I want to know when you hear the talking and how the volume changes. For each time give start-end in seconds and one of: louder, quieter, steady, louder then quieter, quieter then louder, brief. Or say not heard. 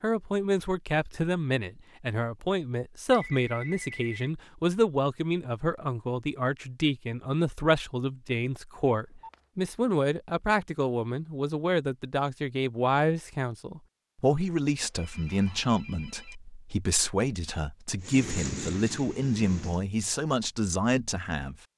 0.0-21.6 steady.